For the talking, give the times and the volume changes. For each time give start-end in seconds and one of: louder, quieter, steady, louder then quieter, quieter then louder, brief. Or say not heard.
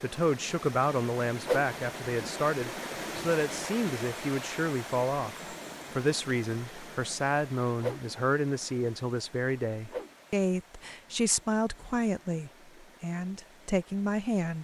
0.0-14.6 steady.